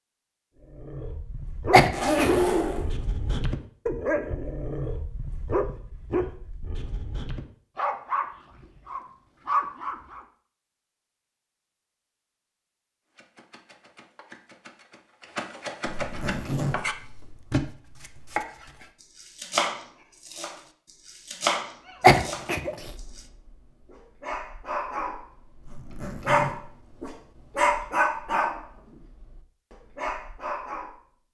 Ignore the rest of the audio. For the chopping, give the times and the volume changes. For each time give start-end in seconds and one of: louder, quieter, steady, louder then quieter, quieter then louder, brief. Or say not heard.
13.2-23.2 louder.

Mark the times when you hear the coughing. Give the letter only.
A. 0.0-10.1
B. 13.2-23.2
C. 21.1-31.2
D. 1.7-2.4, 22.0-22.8
D.